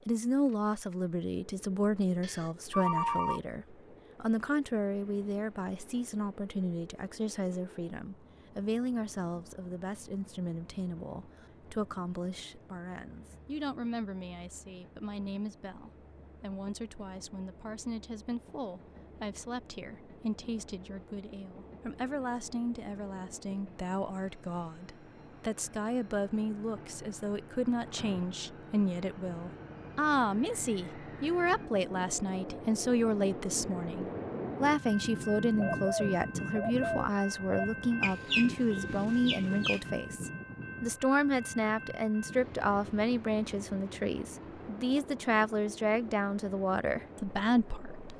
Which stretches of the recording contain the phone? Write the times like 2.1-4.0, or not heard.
2.2-3.4.